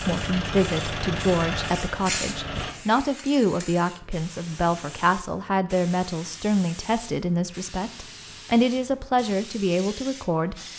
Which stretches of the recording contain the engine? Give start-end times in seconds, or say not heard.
0.0-2.8.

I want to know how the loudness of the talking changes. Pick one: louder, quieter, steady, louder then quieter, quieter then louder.
steady.